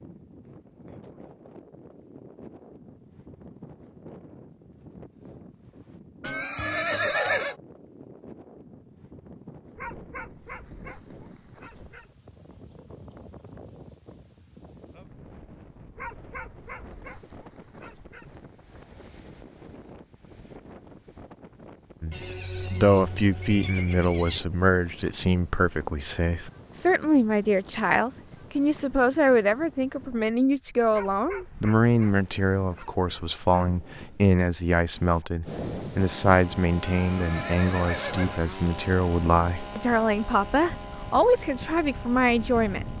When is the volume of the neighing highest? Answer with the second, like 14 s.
7 s.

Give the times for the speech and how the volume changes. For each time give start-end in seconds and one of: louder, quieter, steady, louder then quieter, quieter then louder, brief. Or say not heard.
22.0-42.9 steady.